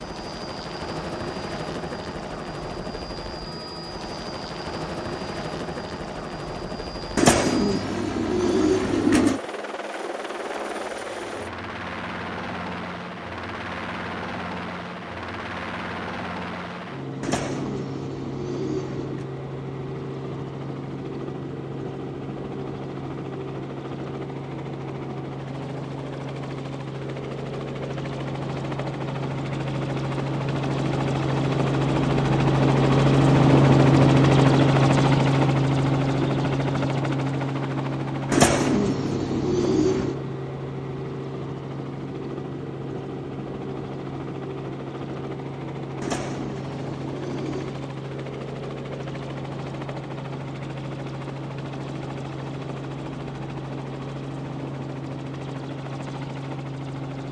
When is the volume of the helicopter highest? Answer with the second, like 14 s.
34 s.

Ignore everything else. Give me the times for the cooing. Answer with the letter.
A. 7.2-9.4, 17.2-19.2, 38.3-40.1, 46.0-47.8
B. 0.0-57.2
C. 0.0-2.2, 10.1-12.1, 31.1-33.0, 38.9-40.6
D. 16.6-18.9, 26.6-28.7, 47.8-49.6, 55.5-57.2
A.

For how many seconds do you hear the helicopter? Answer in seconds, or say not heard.
57 s.